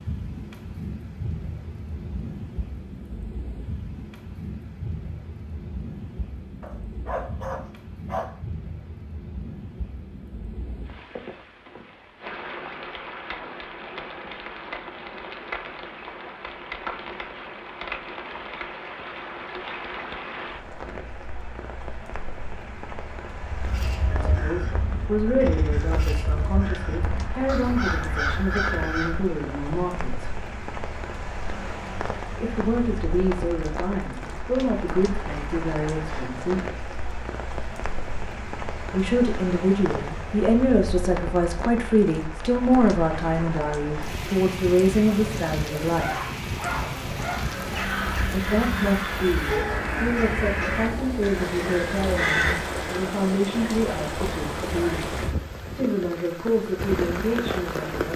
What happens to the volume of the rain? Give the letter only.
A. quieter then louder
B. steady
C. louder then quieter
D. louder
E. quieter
D.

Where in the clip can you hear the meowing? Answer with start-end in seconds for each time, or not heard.
not heard.